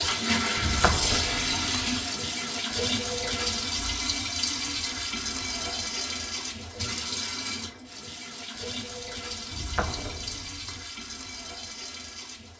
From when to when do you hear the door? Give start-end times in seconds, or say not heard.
0.6-1.9, 9.5-10.8.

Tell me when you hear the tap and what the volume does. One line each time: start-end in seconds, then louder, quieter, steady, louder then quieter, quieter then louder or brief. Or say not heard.
0.0-12.5 quieter.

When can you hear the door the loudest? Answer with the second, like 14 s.
1 s.